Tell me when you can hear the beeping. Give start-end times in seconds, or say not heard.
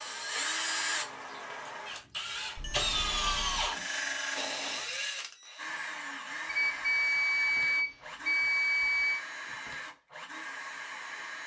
2.5-3.8, 6.5-9.2.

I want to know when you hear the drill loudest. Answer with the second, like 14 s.
3 s.